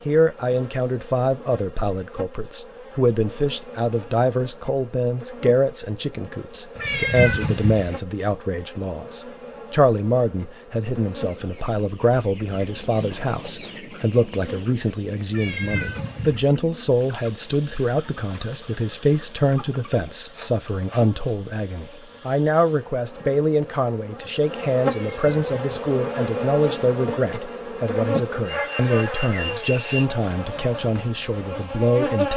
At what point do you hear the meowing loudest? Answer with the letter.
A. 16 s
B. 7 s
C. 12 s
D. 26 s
B.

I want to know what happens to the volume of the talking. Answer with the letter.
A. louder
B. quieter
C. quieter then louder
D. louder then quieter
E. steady
E.